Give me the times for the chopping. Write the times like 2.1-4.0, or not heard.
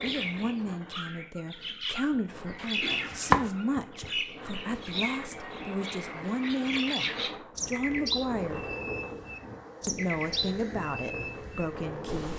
2.1-4.1.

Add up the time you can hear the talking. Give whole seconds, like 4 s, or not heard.
11 s.